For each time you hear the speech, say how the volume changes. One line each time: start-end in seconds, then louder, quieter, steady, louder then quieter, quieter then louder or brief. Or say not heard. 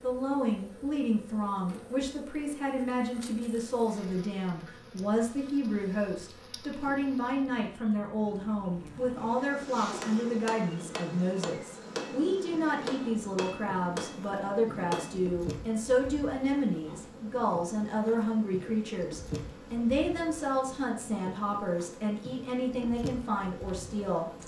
0.0-24.2 steady.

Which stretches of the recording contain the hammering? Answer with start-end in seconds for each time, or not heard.
9.8-15.3.